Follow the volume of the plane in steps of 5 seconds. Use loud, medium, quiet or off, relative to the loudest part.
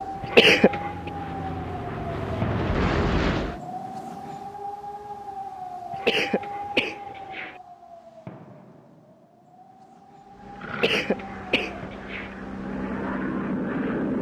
loud, off, loud.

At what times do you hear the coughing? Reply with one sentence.
You can hear the coughing from 0.2 to 1.1 s, from 5.9 to 7.5 s and from 10.7 to 12.3 s.